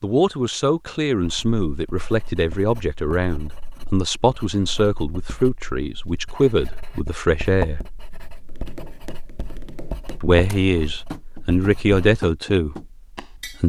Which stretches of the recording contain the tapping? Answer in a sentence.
You can hear the tapping from 8.4 to 13.6 s.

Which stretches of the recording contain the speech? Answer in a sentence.
The speech can be heard from 0.0 to 7.8 s and from 10.2 to 13.6 s.